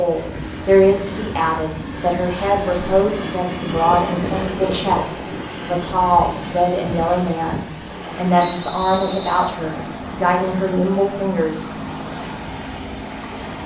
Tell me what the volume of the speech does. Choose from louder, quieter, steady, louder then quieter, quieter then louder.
steady.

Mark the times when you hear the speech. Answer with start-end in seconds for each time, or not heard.
0.0-11.7.